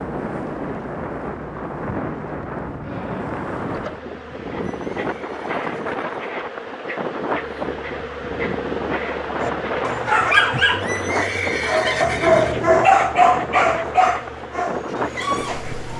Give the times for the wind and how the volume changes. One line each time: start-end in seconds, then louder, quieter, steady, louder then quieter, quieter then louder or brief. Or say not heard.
0.0-15.9 steady.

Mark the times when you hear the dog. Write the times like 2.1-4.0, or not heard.
9.4-15.9.